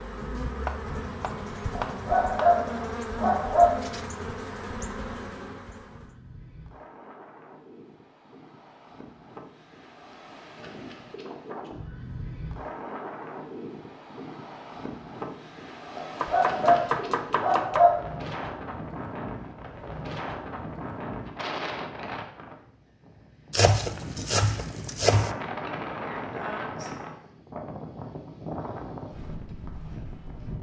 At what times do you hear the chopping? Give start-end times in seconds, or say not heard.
0.7-2.5, 16.2-17.9, 23.5-25.4.